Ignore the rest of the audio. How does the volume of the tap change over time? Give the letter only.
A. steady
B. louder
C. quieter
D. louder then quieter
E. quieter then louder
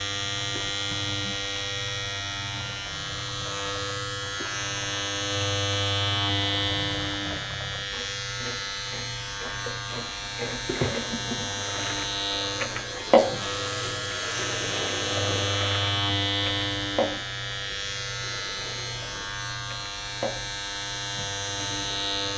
D.